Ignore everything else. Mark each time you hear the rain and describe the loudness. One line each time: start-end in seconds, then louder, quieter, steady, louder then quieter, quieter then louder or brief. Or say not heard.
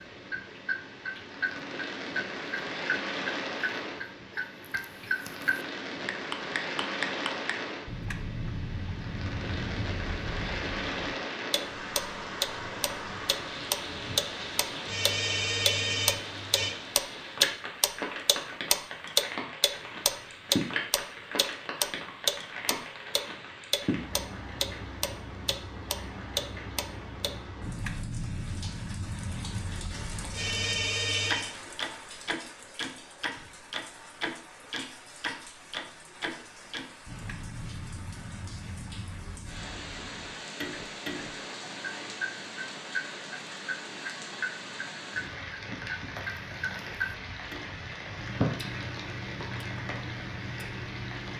0.0-51.3 quieter then louder.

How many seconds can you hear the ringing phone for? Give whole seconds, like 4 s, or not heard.
3 s.